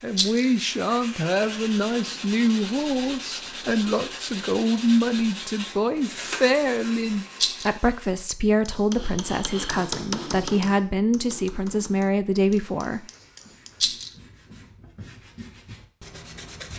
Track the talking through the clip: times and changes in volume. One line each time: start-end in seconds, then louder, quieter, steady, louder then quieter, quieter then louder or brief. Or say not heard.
0.0-13.0 steady.